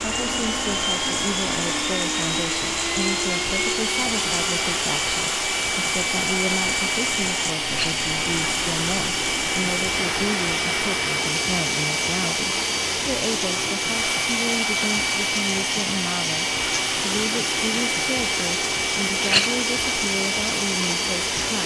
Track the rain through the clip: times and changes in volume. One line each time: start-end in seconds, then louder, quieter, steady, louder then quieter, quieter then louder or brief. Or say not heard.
0.0-21.6 steady.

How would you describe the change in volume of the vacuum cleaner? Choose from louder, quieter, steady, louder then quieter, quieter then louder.
steady.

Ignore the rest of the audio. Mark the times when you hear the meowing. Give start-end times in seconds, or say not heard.
not heard.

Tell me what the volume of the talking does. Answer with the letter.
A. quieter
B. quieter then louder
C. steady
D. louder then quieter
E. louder
C.